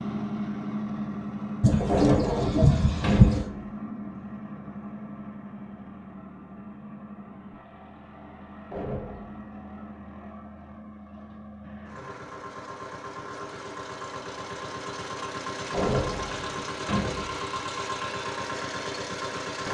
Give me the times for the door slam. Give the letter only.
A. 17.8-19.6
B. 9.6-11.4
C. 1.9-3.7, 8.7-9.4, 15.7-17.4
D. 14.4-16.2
C.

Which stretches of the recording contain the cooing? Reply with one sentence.
You can hear the cooing from 1.6 to 3.5 s.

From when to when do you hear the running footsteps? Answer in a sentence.
You can't hear the running footsteps here.